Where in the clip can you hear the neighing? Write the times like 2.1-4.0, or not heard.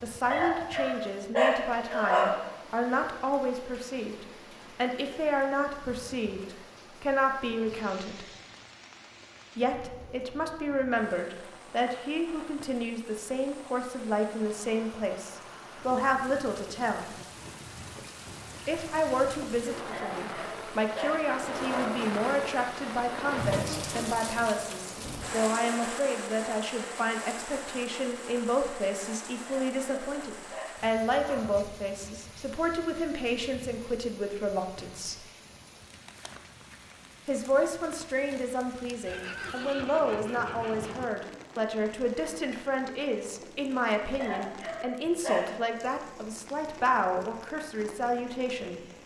39.0-41.0.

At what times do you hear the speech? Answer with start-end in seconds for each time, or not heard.
0.0-8.2, 9.6-17.1, 18.6-35.2, 37.2-48.8.